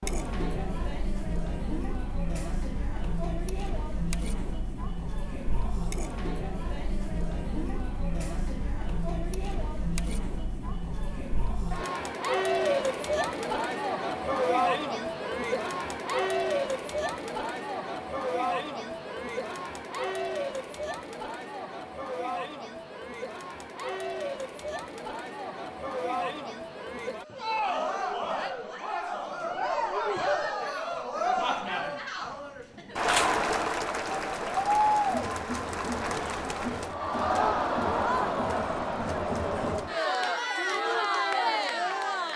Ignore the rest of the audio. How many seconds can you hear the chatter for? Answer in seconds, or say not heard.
42 s.